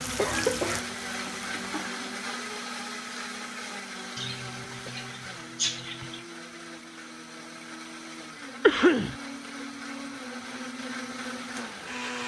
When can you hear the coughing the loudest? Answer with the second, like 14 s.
9 s.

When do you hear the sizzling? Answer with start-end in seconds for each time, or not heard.
0.0-1.9.